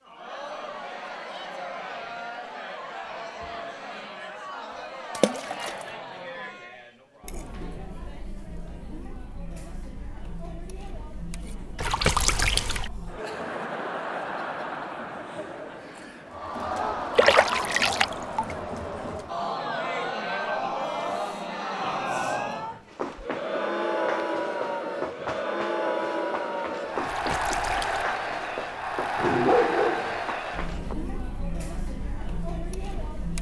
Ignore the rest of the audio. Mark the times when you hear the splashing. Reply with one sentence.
The splashing can be heard from 5.2 to 5.8 s, from 11.8 to 12.9 s, from 17.1 to 18.6 s and from 27.0 to 28.1 s.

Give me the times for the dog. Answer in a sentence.
You can hear the dog from 29.1 to 30.2 s.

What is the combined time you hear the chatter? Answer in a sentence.
You can hear the chatter for 33 seconds altogether.